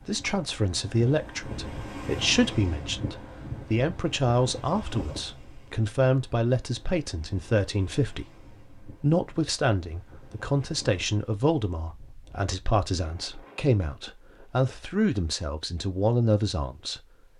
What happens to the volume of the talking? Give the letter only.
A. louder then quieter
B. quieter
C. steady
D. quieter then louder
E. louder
C.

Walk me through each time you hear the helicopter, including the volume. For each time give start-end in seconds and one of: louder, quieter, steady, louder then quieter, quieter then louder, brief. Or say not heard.
not heard.